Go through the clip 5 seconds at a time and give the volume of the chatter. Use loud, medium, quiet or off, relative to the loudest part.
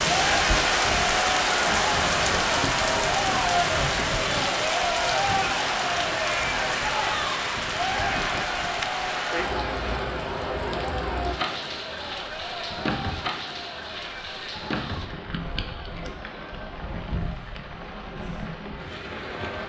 loud, loud, medium, quiet.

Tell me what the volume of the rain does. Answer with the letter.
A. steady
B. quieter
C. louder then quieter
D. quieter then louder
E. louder
B.